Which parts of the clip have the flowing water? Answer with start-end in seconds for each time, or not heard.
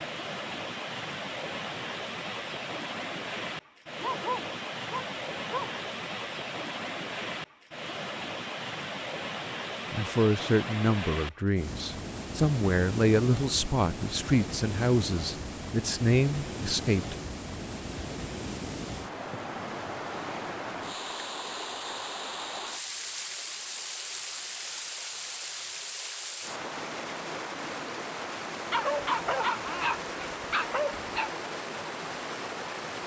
0.0-33.0.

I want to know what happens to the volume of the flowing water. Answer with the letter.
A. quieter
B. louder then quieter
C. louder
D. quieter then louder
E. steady
E.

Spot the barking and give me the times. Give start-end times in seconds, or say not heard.
4.0-5.8, 28.7-31.3.